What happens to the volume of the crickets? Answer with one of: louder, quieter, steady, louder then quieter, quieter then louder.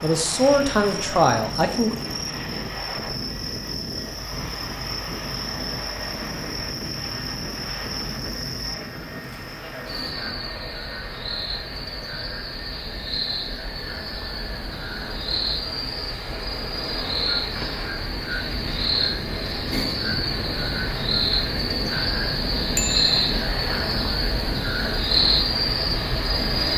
louder.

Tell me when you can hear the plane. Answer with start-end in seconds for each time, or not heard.
0.0-26.7.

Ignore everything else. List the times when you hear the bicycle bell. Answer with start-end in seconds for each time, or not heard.
22.8-23.3.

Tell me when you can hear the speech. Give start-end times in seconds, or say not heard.
0.0-2.0.